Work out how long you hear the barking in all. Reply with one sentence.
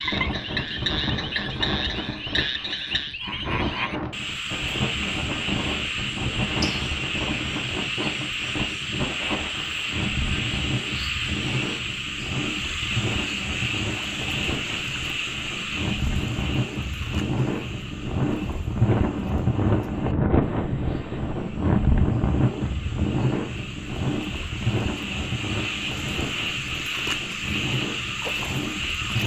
The barking can't be heard in this clip.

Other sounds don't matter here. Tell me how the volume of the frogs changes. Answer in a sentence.
The volume of the frogs goes down, then up.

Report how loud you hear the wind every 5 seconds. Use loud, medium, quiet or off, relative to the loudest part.
medium, medium, medium, loud, loud, medium.